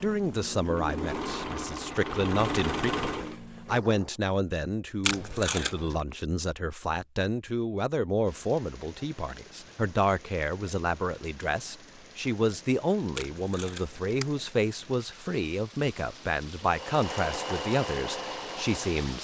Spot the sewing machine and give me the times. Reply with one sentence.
The sewing machine can be heard from 0.0 to 4.2 s and from 16.6 to 19.2 s.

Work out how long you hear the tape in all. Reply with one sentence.
You can hear the tape for 2 seconds altogether.